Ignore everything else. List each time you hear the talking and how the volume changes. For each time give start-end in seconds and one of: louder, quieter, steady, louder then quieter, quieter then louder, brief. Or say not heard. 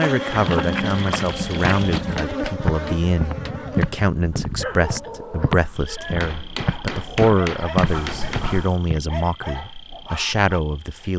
0.0-11.1 steady.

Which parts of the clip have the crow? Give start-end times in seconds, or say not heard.
not heard.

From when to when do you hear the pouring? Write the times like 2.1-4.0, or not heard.
0.3-2.2, 7.8-8.8.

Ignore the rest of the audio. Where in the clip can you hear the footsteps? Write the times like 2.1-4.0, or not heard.
0.0-9.0.